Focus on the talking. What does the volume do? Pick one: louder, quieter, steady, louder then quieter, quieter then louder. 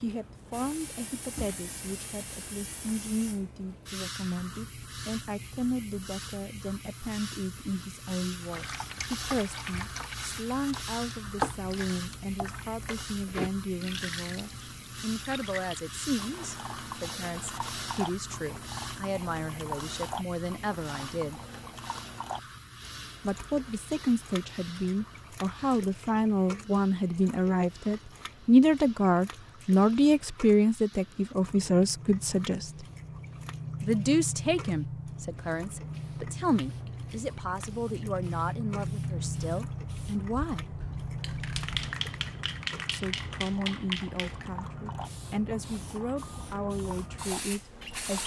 louder then quieter.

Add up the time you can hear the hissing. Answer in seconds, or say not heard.
48 s.